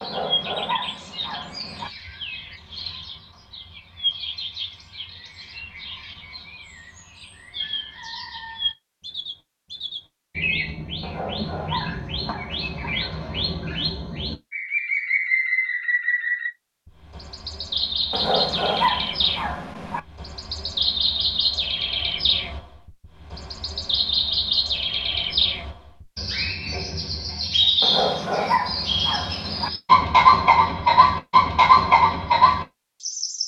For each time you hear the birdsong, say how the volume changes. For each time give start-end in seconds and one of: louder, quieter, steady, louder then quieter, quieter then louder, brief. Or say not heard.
0.0-33.4 louder.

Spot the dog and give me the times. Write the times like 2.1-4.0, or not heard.
0.0-1.9, 11.0-12.9, 18.1-20.0, 27.8-29.7.